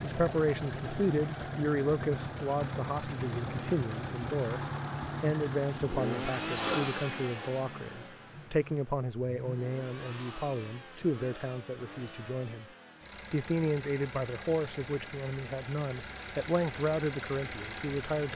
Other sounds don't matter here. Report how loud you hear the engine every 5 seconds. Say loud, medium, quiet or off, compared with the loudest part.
loud, loud, medium, medium.